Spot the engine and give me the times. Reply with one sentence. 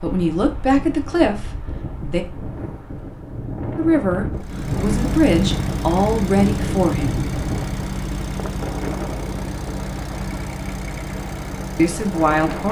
You can hear the engine from 4.3 to 12.6 s.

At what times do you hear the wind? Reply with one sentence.
You can hear the wind from 0.0 to 12.6 s.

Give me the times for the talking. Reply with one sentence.
You can hear the talking from 0.0 to 2.2 s, from 3.8 to 7.3 s and from 11.8 to 12.6 s.